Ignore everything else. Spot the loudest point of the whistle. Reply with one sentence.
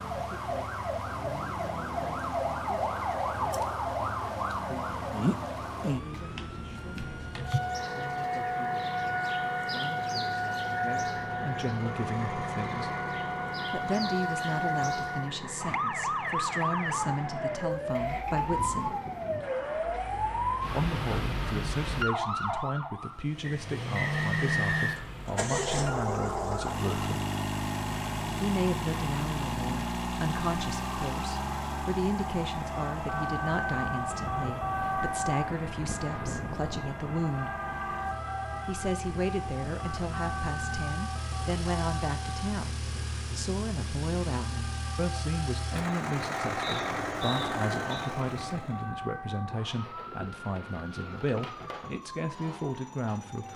The volume of the whistle peaks at 25 seconds.